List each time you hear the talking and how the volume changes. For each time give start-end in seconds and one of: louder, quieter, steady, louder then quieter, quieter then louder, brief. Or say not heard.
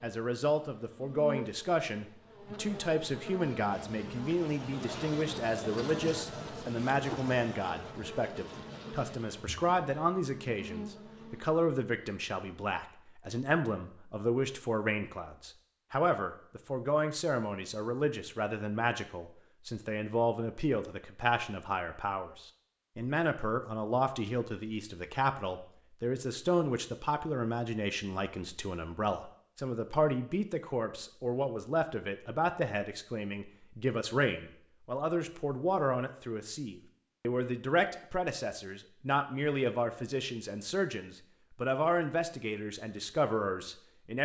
0.0-44.2 steady.